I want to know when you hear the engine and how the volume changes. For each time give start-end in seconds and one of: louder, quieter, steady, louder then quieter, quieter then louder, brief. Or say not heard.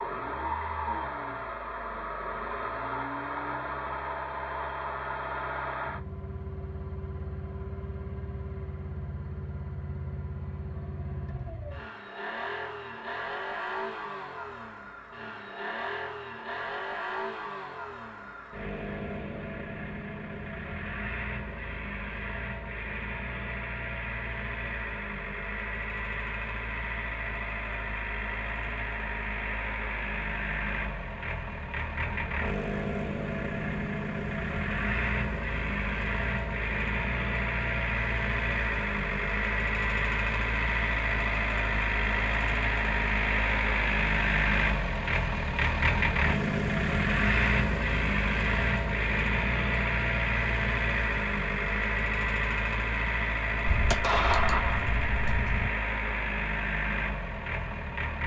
0.0-58.2 louder.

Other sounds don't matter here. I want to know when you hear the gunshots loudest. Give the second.
54 s.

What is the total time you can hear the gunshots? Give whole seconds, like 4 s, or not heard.
2 s.